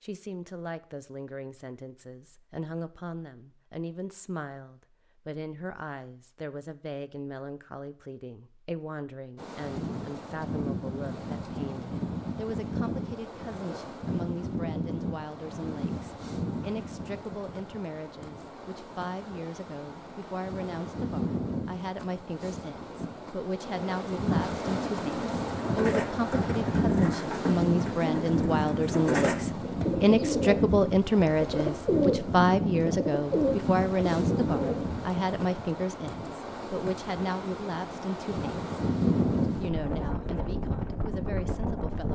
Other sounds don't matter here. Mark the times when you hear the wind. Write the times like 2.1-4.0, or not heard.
9.3-42.0.